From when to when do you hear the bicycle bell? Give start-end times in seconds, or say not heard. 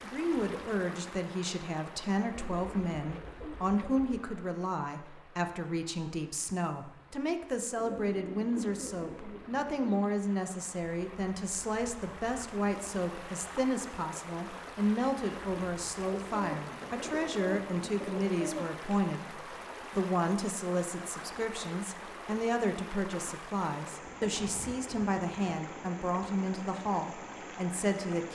not heard.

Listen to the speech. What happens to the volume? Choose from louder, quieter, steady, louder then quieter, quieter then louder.
steady.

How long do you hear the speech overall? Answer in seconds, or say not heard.
28 s.